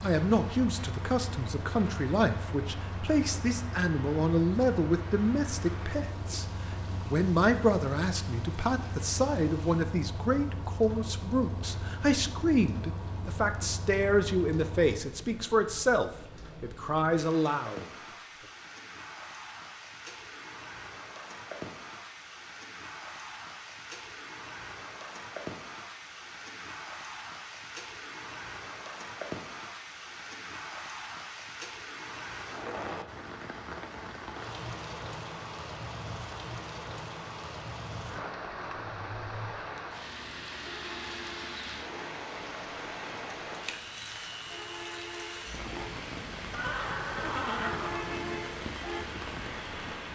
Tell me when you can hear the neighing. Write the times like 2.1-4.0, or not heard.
46.5-48.4.